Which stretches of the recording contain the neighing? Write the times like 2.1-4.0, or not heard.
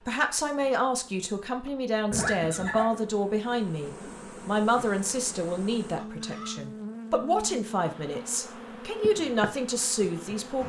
2.1-2.9, 6.0-6.6.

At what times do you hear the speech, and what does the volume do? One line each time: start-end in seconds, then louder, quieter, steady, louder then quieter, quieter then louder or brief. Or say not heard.
0.1-10.6 steady.